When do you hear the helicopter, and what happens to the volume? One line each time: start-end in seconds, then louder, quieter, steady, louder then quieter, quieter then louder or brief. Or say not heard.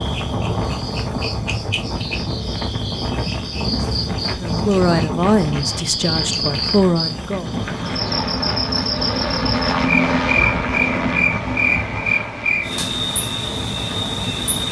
7.6-14.6 louder then quieter.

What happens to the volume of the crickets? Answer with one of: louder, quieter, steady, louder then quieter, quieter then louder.
louder.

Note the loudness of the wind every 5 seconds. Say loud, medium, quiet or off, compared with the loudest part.
loud, loud, medium.